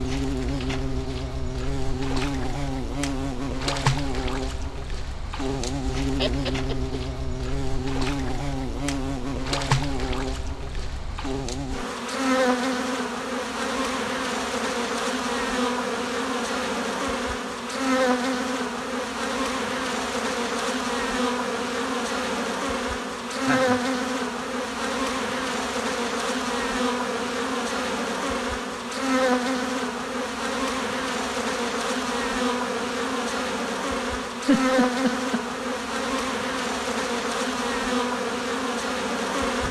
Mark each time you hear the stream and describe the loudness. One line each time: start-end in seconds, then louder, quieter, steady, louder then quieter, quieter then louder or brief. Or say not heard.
not heard.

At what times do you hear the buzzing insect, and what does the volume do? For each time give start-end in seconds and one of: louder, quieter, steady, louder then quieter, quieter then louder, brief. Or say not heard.
0.0-39.6 steady.